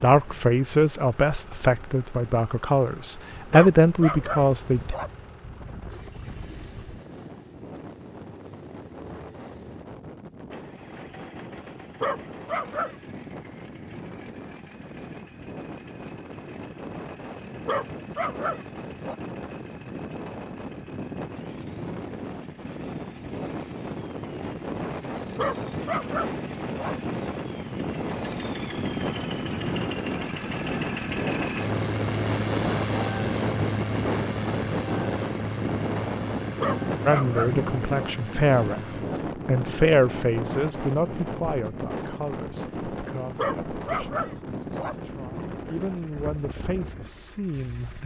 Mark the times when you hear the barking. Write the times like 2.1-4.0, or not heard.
3.5-5.1, 12.0-13.0, 17.6-19.1, 25.4-26.9, 36.6-38.1, 43.4-45.0.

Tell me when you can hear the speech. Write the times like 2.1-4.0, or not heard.
0.0-5.0, 37.0-48.0.